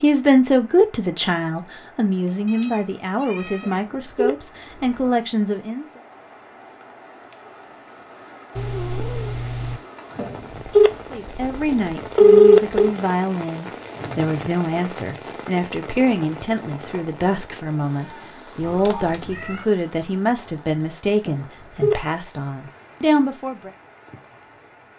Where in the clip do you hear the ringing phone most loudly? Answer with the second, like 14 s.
12 s.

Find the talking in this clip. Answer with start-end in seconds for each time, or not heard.
0.0-6.0, 11.1-23.7.